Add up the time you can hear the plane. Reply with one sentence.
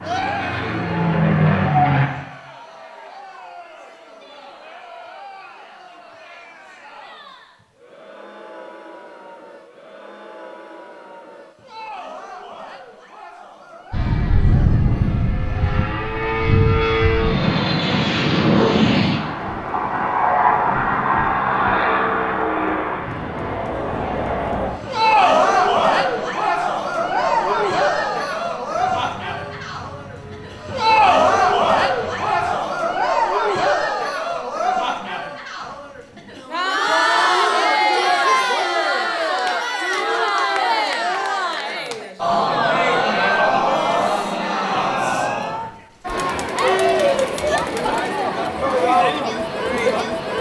You can hear the plane for 21 seconds altogether.